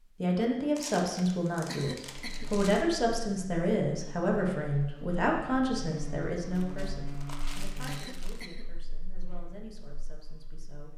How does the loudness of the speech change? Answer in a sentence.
The volume of the speech goes down.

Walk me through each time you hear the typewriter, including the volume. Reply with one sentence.
You can't hear the typewriter here.